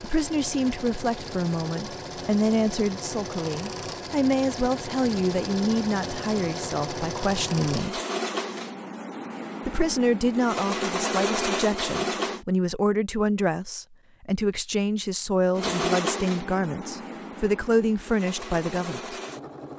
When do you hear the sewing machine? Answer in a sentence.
The sewing machine can be heard from 0.0 to 12.4 s and from 15.6 to 19.7 s.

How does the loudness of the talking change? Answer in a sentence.
The volume of the talking stays about the same.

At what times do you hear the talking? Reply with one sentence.
The talking can be heard from 0.0 to 8.0 s and from 9.7 to 19.2 s.